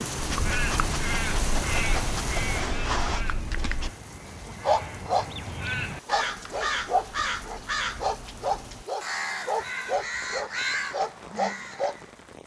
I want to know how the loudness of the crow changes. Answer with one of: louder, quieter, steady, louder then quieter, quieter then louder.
quieter then louder.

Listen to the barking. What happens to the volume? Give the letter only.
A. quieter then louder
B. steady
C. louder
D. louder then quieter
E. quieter
C.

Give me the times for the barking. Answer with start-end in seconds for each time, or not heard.
0.1-3.9, 4.6-11.9.